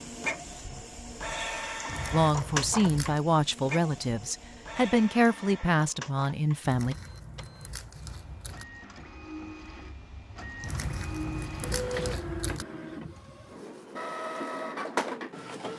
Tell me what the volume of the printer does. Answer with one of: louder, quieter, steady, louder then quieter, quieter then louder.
quieter then louder.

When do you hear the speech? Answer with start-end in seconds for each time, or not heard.
2.1-7.0.